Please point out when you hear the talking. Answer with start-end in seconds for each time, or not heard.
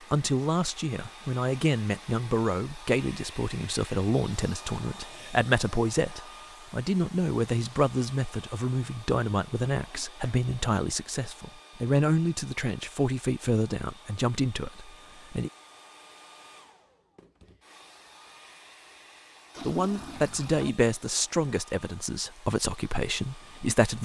0.1-15.5, 19.6-24.0.